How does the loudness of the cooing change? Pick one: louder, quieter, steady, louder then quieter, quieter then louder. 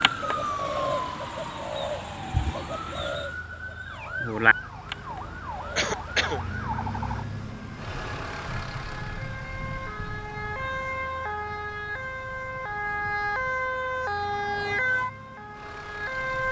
louder then quieter.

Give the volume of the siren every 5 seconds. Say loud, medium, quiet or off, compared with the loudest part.
medium, medium, loud, loud.